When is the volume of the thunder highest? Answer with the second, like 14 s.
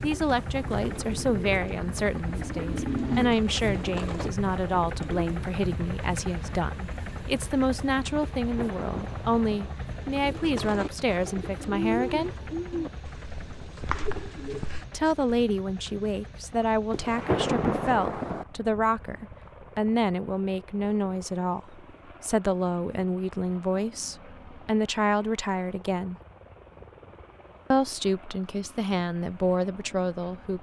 17 s.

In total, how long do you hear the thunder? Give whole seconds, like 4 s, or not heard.
3 s.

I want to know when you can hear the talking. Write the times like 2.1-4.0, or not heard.
0.0-12.3, 14.9-26.1, 27.7-30.5.